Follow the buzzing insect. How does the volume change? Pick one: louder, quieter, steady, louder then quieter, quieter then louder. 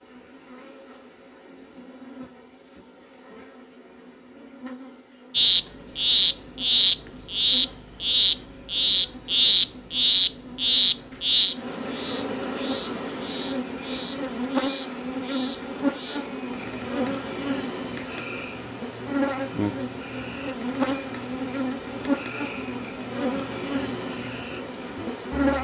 louder.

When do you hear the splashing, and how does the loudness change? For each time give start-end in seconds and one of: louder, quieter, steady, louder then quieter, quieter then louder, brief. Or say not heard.
not heard.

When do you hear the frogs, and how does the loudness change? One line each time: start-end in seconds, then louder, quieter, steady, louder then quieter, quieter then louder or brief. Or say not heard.
5.3-25.5 quieter.